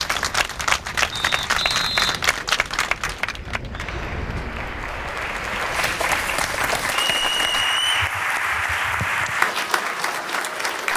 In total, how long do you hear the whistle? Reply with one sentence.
The whistle can be heard for 2 seconds in total.